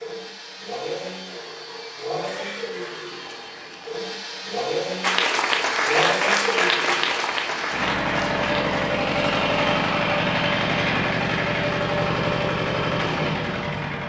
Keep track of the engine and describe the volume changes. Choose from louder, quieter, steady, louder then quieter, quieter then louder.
louder.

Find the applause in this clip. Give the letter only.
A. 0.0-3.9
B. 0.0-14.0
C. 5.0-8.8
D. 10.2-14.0
C.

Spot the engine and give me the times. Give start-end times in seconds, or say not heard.
0.0-14.0.